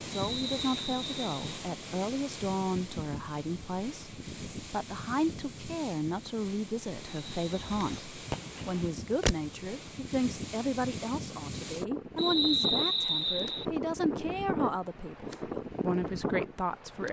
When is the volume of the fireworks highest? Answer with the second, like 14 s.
9 s.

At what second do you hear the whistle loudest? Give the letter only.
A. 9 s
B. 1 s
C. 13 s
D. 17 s
C.